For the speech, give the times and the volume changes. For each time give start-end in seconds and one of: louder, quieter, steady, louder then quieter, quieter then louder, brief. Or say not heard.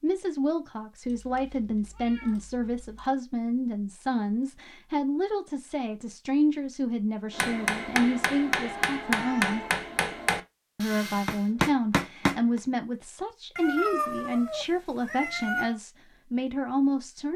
0.0-9.7 steady
10.8-17.3 steady.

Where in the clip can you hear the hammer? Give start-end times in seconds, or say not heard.
7.3-12.6.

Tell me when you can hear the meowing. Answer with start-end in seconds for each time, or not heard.
1.1-3.1, 8.2-9.9, 13.6-15.8.